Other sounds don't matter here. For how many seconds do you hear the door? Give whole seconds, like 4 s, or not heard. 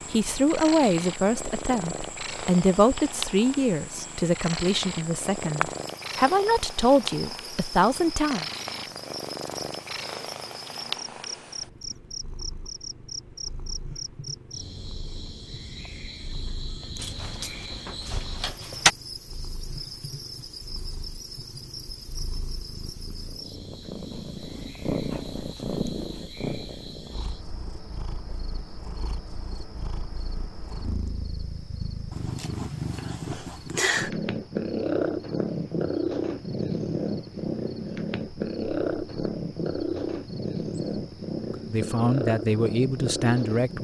2 s.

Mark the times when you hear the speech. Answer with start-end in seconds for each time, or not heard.
0.1-8.4, 41.7-43.7.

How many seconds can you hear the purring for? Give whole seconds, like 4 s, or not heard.
44 s.